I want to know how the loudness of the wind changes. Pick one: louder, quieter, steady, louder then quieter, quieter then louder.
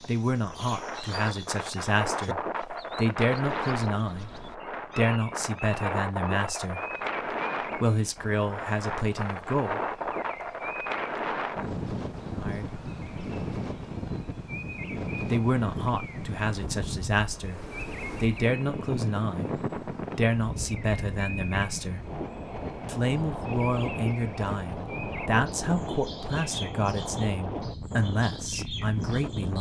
steady.